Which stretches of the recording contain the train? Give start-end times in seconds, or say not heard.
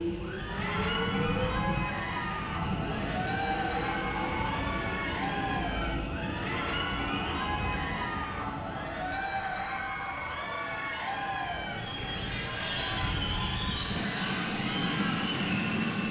0.0-16.0.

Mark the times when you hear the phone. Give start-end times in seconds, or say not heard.
not heard.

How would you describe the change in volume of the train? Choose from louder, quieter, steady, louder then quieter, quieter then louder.
quieter then louder.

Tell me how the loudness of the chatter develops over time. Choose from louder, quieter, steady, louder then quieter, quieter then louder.
steady.